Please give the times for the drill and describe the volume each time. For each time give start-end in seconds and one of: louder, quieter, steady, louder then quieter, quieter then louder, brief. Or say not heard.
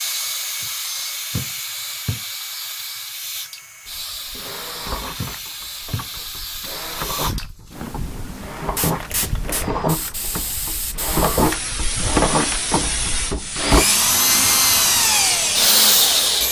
0.0-16.4 louder.